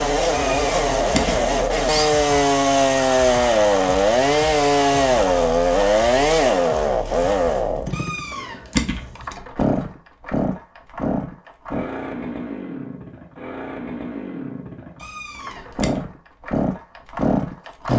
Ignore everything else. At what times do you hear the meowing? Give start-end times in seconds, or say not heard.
0.3-2.0, 7.9-9.3, 15.0-16.0.